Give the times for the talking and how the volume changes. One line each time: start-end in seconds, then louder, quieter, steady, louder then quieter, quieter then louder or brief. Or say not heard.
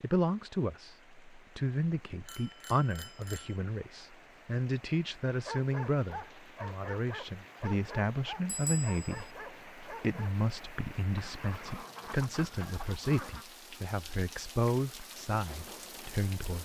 0.0-16.6 steady.